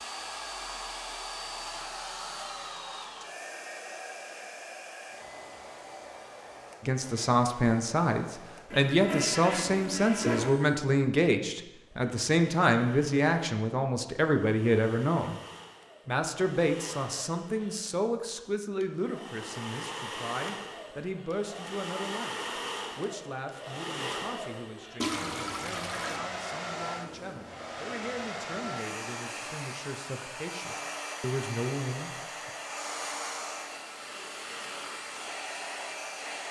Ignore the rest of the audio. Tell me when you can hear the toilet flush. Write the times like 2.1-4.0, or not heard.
8.7-10.6, 25.0-26.2.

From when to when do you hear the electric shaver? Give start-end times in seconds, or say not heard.
not heard.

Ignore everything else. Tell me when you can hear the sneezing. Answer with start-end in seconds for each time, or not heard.
not heard.